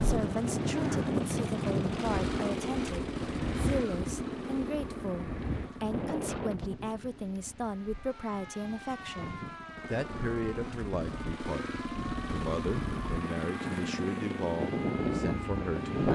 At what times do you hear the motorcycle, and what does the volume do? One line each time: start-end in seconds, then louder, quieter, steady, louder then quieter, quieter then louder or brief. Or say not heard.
0.0-16.1 quieter then louder.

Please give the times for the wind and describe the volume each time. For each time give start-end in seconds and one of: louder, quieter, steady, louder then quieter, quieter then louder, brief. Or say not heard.
0.0-16.1 quieter then louder.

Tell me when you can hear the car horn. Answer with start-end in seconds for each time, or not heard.
not heard.